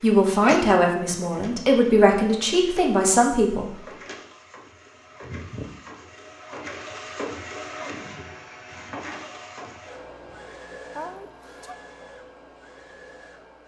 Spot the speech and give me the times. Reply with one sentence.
The speech can be heard from 0.0 to 3.7 s.